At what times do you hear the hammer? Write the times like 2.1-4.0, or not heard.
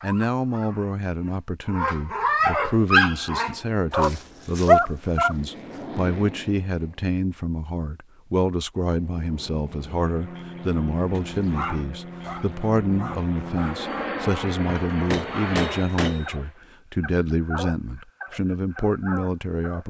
14.7-16.4.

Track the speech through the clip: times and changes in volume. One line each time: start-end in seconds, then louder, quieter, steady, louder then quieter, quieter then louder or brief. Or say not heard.
0.0-19.8 steady.